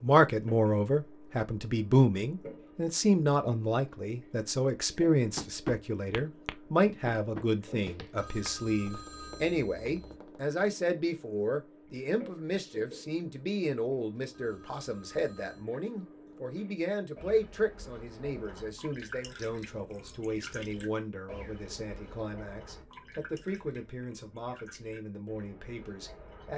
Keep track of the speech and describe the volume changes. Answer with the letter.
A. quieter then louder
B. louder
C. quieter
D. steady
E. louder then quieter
C.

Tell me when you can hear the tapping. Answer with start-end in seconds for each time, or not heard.
5.3-10.6.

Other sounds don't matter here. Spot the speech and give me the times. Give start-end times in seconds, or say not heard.
0.0-26.5.